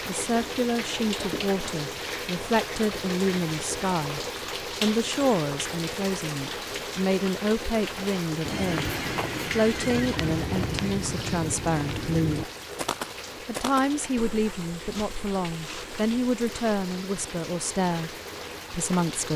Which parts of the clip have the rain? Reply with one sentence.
You can hear the rain from 0.0 to 19.3 s.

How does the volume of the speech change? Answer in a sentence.
The loudness of the speech stays about the same.